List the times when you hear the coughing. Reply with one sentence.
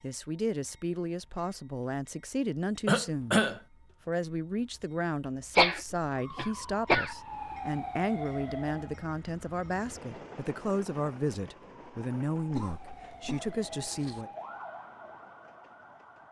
You can hear the coughing from 2.9 to 3.6 s, from 5.5 to 7.2 s and from 12.5 to 14.2 s.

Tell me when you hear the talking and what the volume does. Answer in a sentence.
You can hear the talking from 0.0 to 14.3 s, at a steady volume.